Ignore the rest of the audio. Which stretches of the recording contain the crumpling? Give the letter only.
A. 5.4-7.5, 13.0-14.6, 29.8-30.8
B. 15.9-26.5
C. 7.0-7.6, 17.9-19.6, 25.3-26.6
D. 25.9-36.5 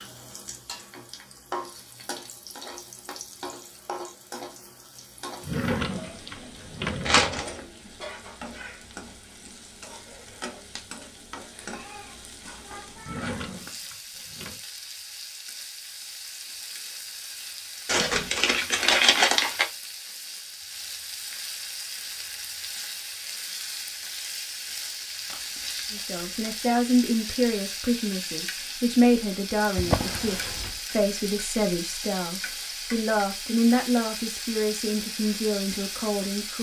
C.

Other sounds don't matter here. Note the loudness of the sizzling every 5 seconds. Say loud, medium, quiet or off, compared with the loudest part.
medium, medium, medium, medium, loud, loud, loud, loud.